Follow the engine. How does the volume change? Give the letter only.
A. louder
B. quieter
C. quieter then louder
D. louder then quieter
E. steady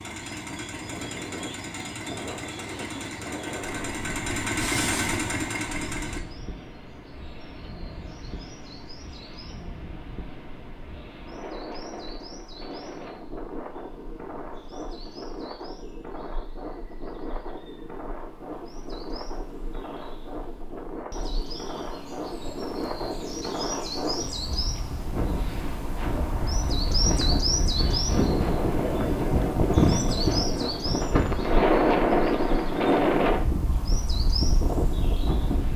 A.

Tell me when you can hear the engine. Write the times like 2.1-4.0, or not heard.
0.0-6.2.